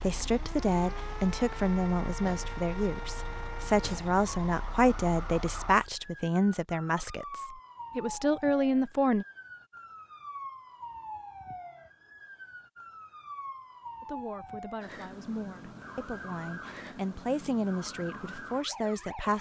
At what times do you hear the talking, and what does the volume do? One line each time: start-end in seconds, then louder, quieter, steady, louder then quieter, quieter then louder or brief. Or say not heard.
0.0-9.2 steady
14.0-19.3 louder.